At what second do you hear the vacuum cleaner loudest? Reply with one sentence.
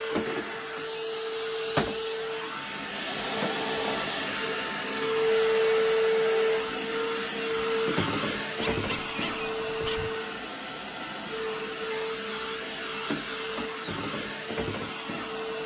The loudest moment of the vacuum cleaner is at 6 seconds.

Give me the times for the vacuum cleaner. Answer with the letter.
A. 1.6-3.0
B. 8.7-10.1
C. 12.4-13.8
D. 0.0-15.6
D.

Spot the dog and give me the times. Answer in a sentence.
The dog can be heard from 8.7 to 10.1 s.